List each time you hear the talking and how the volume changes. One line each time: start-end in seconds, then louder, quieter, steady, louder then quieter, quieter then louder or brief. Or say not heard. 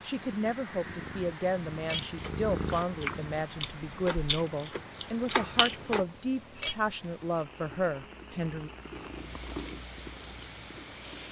0.0-8.7 steady.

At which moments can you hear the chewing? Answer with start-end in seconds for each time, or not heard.
2.0-6.0.